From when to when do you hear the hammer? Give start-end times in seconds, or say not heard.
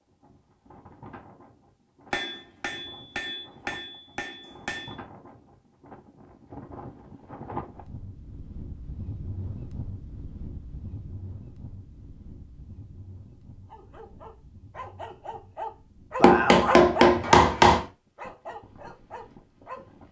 2.1-5.0, 16.2-17.9.